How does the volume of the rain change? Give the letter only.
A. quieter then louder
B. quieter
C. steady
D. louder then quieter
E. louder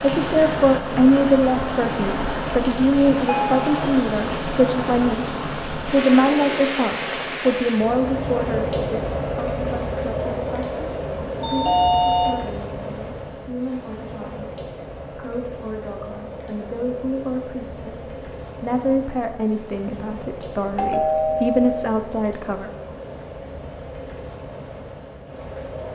B.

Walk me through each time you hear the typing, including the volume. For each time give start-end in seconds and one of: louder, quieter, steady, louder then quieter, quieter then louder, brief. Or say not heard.
not heard.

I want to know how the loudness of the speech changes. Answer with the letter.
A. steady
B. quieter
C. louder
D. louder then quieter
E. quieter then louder
E.